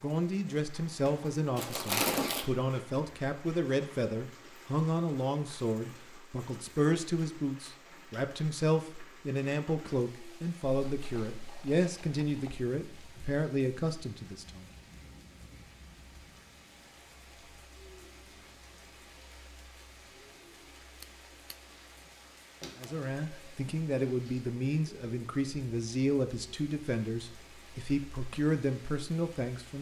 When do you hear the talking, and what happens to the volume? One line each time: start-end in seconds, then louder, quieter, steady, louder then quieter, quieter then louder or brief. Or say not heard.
0.0-14.7 steady
22.8-29.7 steady.